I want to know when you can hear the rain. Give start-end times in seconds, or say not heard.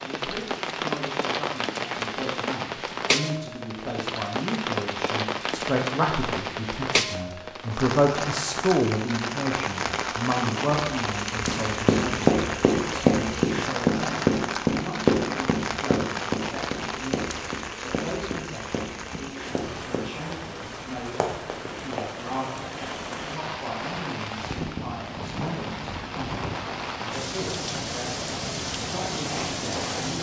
0.0-30.1.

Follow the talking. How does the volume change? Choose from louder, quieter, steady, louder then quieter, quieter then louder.
louder then quieter.